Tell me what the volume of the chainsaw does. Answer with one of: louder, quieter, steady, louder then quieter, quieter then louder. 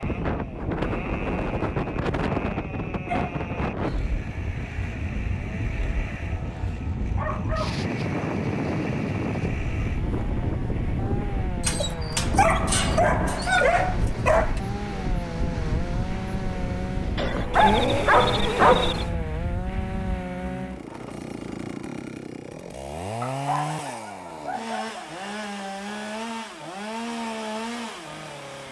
louder.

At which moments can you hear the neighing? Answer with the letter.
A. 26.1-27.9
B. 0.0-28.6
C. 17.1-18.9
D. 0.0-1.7
C.